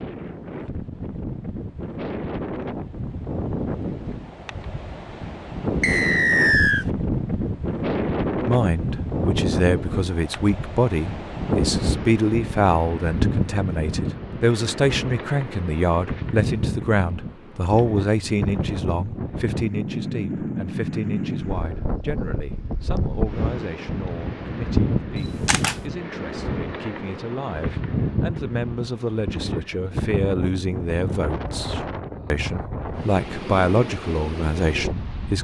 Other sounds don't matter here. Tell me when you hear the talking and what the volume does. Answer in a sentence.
The talking can be heard from 8.4 to 35.3 s, getting quieter then louder.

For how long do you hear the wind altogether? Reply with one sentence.
The wind can be heard for 35 seconds in total.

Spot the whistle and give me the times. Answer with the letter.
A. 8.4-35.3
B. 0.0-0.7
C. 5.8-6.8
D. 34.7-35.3
C.